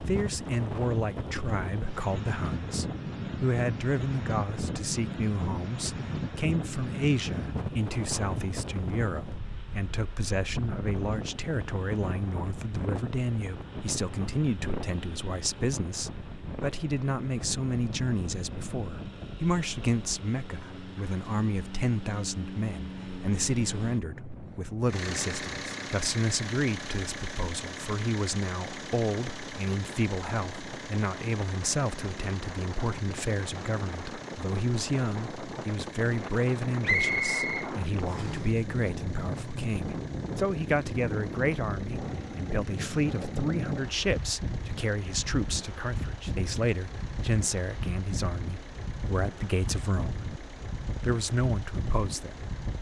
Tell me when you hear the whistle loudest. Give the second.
37 s.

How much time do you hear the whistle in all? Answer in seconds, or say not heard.
2 s.